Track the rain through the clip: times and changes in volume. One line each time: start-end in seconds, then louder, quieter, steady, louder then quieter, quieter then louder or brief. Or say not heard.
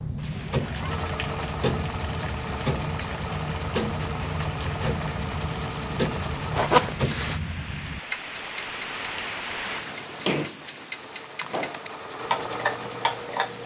0.1-13.6 louder then quieter.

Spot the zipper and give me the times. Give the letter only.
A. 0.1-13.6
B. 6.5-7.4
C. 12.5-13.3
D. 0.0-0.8
B.